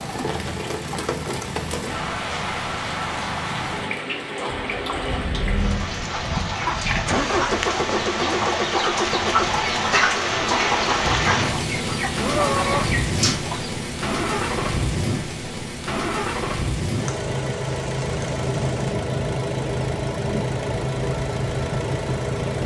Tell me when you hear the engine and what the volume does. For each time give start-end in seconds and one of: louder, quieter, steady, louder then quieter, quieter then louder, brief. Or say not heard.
0.0-22.6 louder.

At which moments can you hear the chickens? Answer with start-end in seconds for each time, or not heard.
6.3-13.7.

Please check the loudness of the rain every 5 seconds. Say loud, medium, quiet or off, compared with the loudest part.
loud, loud, loud, medium, medium.